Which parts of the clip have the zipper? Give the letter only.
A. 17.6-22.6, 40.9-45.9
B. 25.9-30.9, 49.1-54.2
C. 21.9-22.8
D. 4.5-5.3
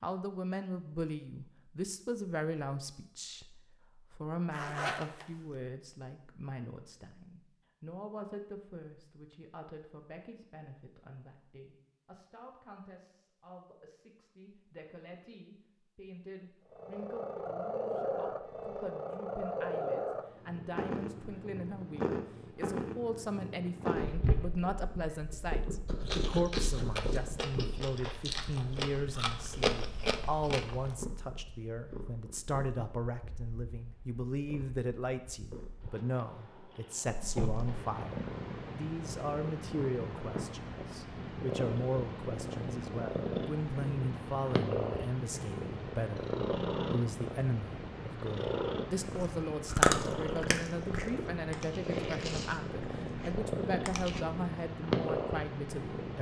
D.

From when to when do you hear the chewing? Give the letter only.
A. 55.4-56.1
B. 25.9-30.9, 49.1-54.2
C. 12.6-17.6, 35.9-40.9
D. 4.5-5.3
B.